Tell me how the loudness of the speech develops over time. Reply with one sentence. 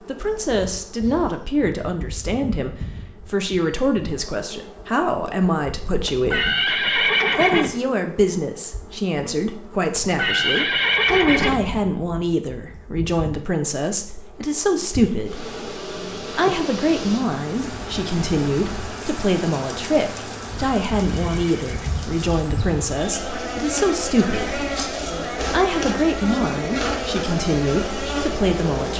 The volume of the speech stays about the same.